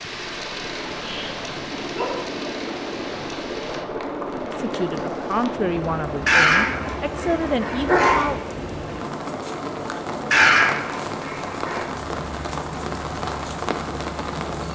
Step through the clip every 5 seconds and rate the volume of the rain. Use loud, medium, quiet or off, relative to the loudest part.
medium, medium, loud.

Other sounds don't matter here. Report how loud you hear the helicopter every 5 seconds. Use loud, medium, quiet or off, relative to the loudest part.
loud, loud, medium.